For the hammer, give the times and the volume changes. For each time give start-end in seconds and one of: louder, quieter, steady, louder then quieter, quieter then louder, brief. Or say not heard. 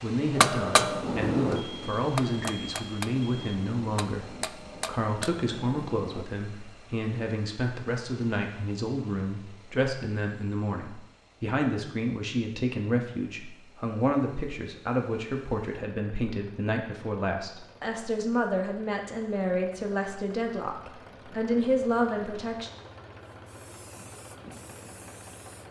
0.3-6.2 quieter.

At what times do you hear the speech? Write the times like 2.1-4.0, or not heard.
0.0-22.7.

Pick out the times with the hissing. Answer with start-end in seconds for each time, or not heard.
23.2-25.6.